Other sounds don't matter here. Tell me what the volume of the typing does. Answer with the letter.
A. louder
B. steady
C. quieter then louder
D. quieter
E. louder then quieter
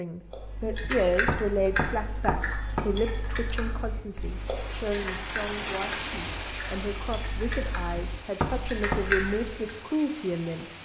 C.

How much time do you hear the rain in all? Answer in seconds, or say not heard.
7 s.